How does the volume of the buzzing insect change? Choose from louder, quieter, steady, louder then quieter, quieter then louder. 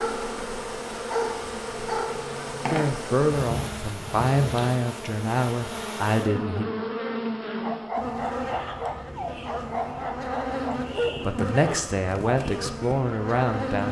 steady.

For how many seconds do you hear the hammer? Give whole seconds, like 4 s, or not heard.
not heard.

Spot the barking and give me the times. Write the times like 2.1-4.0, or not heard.
0.0-2.6, 7.6-12.9.